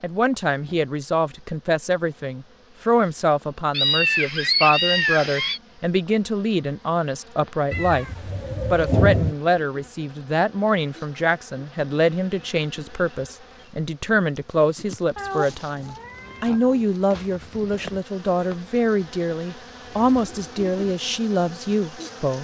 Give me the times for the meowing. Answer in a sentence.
You can hear the meowing from 3.7 to 5.6 s, from 7.7 to 9.3 s and from 15.2 to 16.9 s.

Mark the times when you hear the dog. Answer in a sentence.
The dog can't be heard in this clip.